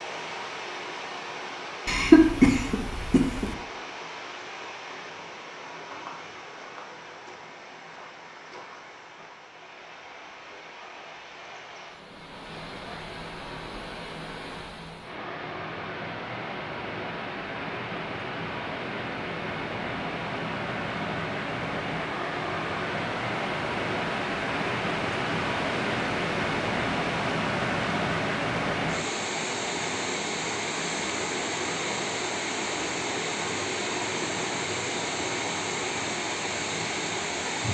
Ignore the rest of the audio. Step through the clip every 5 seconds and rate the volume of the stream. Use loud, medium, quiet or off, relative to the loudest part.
medium, quiet, quiet, medium, loud, loud, loud, loud.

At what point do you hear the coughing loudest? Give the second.
2 s.